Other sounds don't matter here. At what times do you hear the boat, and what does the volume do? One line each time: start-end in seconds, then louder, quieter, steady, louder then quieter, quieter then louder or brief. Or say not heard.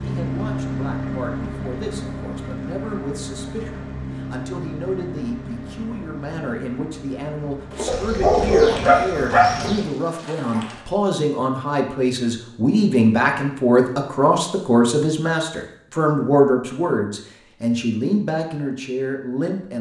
0.0-10.8 quieter.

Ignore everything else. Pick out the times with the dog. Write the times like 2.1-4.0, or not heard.
7.8-9.8.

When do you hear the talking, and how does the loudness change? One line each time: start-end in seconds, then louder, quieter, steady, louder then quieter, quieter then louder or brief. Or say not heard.
0.0-19.7 louder.